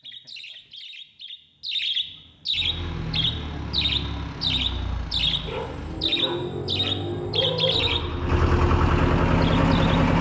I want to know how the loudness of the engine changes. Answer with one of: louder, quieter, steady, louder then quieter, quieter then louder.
louder.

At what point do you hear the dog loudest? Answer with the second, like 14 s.
8 s.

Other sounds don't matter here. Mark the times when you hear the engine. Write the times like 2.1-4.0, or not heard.
2.5-10.1.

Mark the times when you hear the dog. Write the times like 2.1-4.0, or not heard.
5.5-8.1.